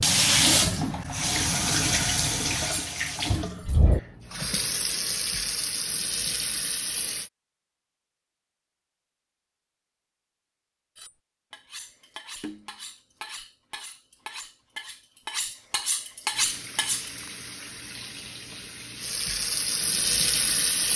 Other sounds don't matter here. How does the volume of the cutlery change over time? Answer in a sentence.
The volume of the cutlery goes up.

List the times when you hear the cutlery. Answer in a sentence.
You can hear the cutlery from 10.9 to 17.3 s.